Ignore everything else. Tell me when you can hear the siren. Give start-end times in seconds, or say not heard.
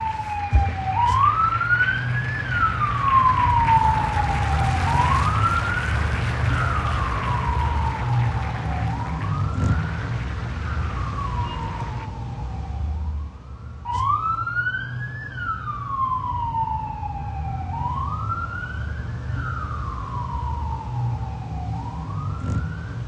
0.0-23.0.